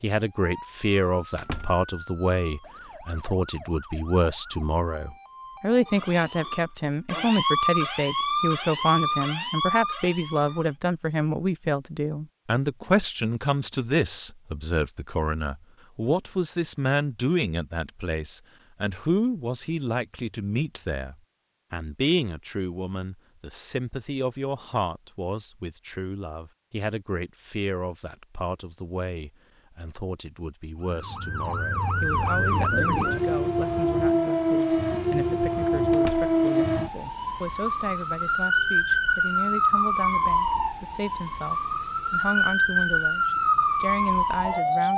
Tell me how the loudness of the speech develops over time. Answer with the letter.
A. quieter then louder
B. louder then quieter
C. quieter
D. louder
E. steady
C.